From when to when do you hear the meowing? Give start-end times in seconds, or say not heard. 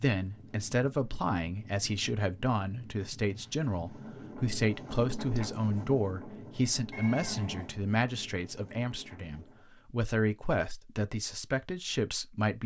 6.9-7.7.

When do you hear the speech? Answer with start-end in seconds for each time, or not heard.
0.0-12.6.